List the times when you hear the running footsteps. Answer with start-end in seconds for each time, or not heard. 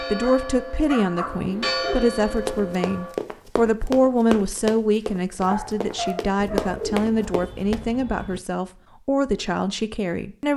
2.4-7.8.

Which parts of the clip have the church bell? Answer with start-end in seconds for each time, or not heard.
0.0-3.1.